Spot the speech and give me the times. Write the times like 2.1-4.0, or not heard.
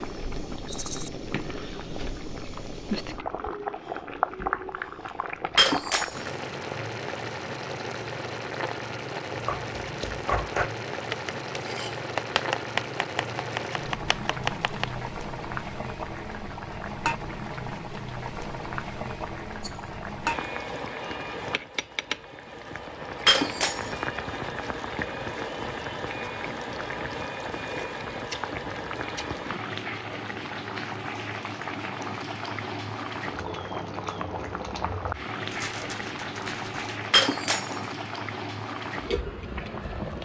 not heard.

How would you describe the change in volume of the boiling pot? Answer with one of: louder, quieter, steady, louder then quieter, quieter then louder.
steady.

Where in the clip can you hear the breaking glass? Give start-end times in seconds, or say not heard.
5.5-6.3, 23.2-24.1, 37.1-38.0.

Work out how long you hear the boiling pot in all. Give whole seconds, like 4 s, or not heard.
40 s.